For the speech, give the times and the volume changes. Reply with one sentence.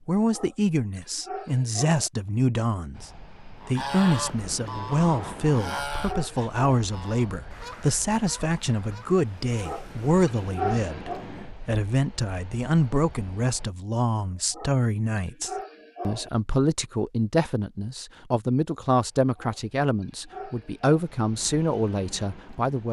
The speech can be heard from 0.1 to 22.8 s, at a steady volume.